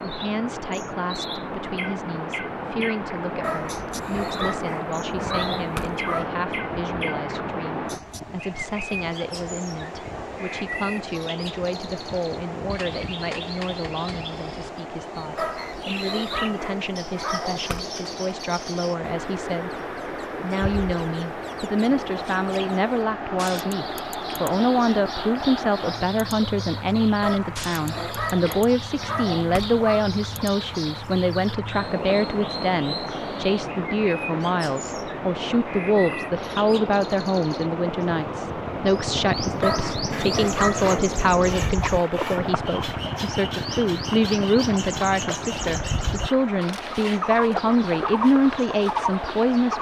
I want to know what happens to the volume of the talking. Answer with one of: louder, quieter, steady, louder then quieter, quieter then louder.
louder.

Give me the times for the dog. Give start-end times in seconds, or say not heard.
3.4-6.3, 15.3-17.9, 27.2-30.1, 39.6-41.1.